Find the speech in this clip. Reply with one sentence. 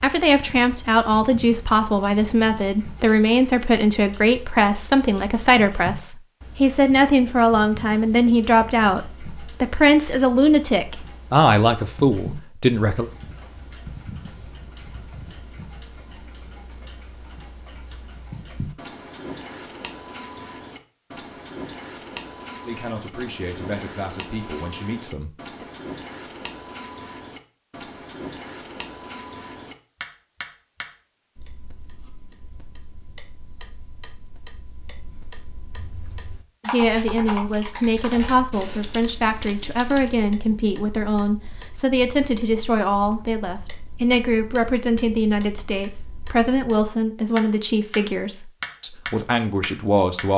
You can hear the speech from 0.0 to 13.1 s, from 22.6 to 25.6 s and from 36.6 to 50.3 s.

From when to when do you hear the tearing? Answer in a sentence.
The tearing can't be heard in this clip.